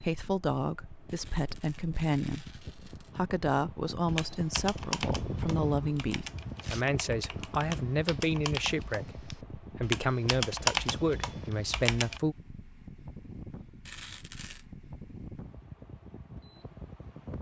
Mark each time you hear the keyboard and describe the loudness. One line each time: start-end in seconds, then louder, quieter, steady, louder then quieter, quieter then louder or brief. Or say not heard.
4.0-12.2 quieter then louder.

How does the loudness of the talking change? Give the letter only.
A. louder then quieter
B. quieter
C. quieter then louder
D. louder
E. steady
E.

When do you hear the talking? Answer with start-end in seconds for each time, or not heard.
0.0-12.3.